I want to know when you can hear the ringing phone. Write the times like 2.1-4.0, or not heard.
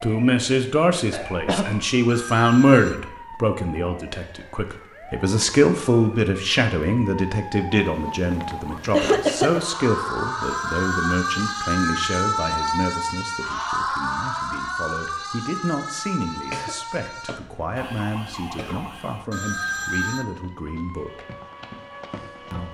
2.0-3.0, 10.4-12.0, 19.3-20.2.